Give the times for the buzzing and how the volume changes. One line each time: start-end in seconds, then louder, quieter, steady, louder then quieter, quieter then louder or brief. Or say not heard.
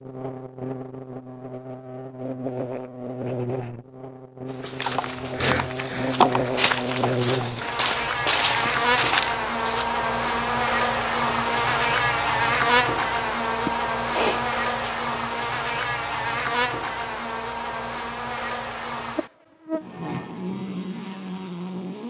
0.0-22.0 louder then quieter.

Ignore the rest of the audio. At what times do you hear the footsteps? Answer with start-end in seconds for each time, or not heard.
4.5-9.9.